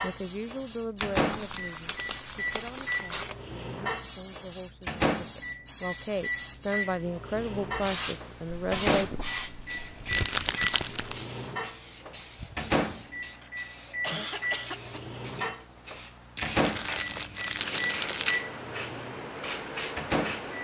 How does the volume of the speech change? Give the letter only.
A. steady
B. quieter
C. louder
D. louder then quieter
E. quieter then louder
E.